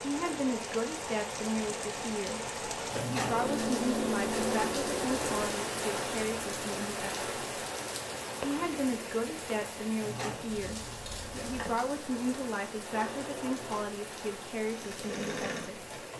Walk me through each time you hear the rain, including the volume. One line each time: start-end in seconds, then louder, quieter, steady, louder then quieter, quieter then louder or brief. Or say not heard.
0.0-16.1 quieter.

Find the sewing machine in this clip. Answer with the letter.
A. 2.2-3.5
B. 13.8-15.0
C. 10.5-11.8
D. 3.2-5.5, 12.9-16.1
D.